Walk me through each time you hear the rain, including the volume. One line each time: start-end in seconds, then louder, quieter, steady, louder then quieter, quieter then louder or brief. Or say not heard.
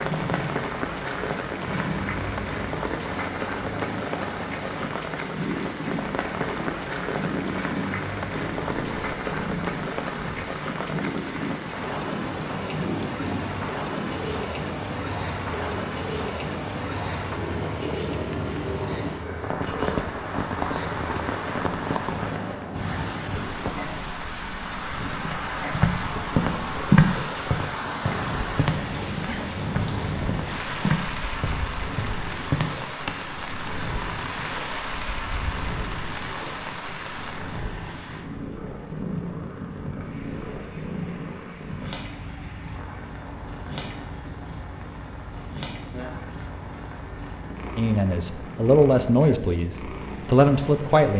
0.0-51.1 quieter.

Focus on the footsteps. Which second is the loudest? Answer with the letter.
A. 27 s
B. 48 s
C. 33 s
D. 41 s
A.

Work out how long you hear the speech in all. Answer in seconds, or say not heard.
3 s.